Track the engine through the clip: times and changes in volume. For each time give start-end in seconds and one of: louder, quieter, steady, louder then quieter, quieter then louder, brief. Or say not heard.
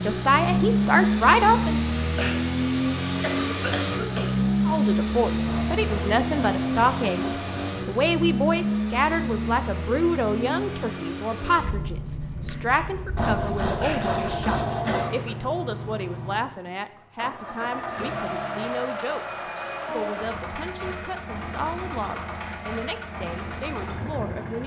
0.0-24.6 quieter.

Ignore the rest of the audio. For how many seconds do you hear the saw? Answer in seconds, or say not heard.
4 s.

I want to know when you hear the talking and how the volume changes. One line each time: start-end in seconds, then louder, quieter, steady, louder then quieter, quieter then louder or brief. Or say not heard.
0.1-1.8 brief
4.7-24.6 quieter.